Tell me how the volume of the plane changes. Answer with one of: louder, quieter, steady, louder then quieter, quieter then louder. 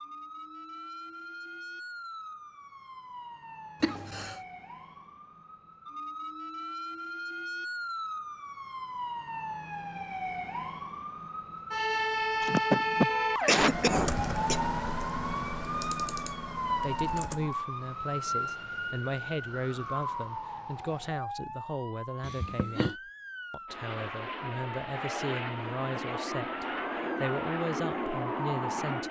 louder.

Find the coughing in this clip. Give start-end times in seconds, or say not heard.
3.8-4.4, 12.4-14.6, 22.2-22.9.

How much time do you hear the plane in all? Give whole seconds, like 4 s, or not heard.
5 s.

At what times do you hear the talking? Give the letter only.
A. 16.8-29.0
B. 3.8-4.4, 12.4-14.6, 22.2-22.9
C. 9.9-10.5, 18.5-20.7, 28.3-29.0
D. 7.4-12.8
A.